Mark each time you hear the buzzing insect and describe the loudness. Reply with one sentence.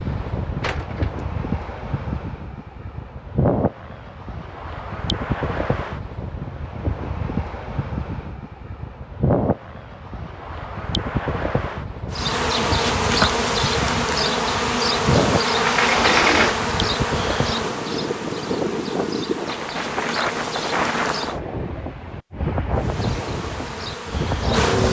The buzzing insect can be heard from 12.1 to 21.4 s, getting quieter; and briefly from 22.7 to 24.8 s.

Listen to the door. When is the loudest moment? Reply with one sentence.
The volume of the door peaks at 16 seconds.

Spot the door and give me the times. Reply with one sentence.
You can hear the door from 0.6 to 1.1 s and from 15.4 to 16.6 s.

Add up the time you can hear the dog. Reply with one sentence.
You can't hear the dog here.